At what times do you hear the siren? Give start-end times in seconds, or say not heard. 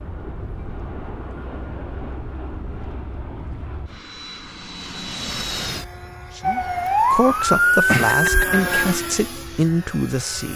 6.4-8.8.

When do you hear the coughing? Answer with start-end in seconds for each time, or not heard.
7.8-8.7.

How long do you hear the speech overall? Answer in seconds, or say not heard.
4 s.